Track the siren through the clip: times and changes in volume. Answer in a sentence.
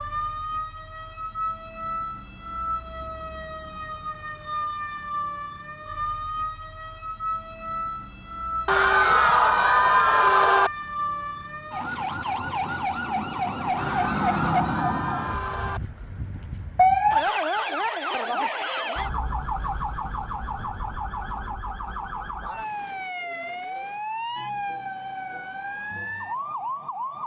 The siren can be heard from 0.0 to 27.2 s, getting louder then quieter.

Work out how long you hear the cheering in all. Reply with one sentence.
The cheering can be heard for 4 seconds in total.